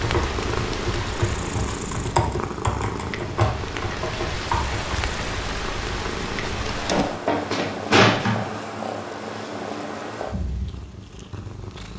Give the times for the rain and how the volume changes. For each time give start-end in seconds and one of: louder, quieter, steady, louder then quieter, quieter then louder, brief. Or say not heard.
0.0-7.2 quieter then louder.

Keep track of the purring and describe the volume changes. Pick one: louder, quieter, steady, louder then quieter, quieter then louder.
steady.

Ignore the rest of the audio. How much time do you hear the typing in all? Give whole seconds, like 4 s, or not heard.
5 s.